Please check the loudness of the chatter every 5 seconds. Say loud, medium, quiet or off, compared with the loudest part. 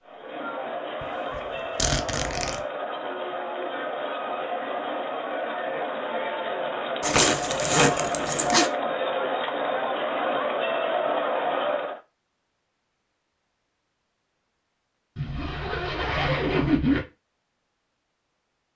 medium, loud, loud, off.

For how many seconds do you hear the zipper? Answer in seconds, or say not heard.
4 s.